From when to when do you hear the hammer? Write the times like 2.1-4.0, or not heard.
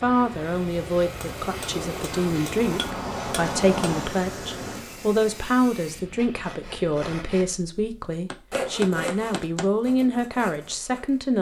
1.1-4.2, 8.3-9.7.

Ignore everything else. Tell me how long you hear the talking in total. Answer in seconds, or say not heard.
11 s.